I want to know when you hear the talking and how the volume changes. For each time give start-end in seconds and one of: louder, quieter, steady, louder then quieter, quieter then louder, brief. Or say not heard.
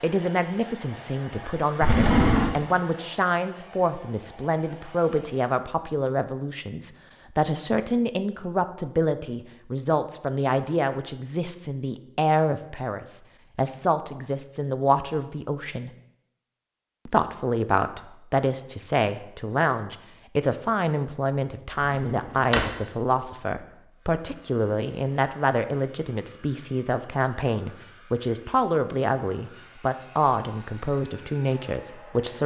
0.0-15.9 steady
17.1-32.4 steady.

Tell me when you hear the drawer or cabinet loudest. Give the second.
2 s.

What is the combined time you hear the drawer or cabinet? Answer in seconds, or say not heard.
2 s.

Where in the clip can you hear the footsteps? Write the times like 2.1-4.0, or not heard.
not heard.